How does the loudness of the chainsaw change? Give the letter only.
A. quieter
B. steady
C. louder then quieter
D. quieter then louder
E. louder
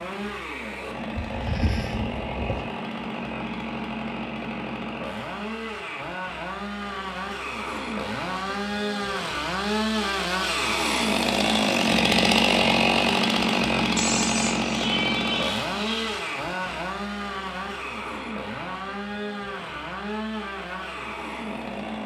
C.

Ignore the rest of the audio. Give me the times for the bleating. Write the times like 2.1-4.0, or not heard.
1.1-2.6, 13.9-16.2.